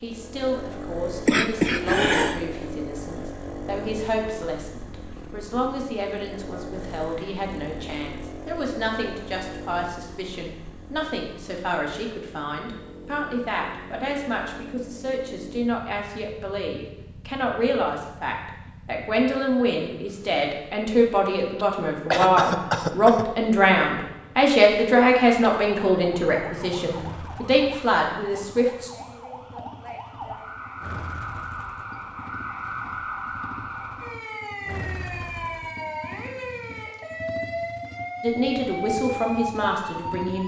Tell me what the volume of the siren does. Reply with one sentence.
The volume of the siren goes up.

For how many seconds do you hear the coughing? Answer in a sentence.
The coughing can be heard for 2 seconds in total.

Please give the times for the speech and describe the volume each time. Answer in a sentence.
You can hear the speech from 0.0 to 28.9 s, getting louder; and briefly from 38.2 to 40.4 s.